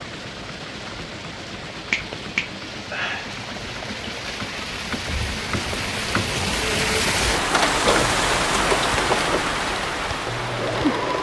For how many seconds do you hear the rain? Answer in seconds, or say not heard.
11 s.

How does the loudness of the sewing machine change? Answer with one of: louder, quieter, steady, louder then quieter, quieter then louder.
louder.